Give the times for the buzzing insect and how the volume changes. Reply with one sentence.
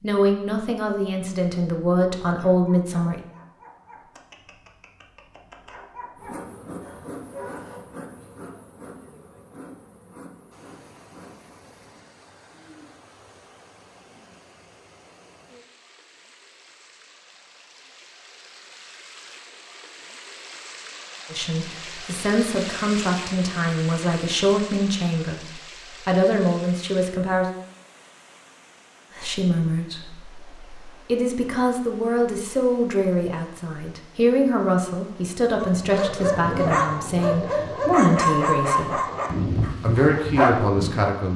You can hear the buzzing insect from 6.2 to 14.3 s, getting quieter.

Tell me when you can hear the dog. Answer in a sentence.
You can hear the dog from 2.4 to 7.8 s and from 35.6 to 41.1 s.